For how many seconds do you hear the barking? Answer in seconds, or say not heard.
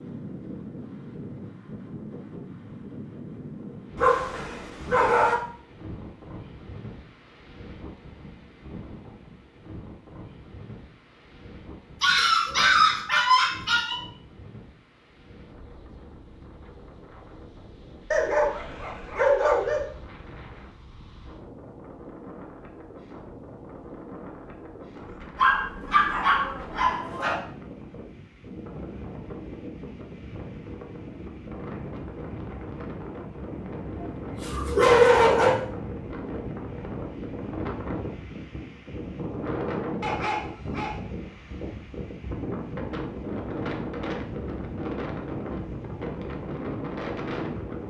10 s.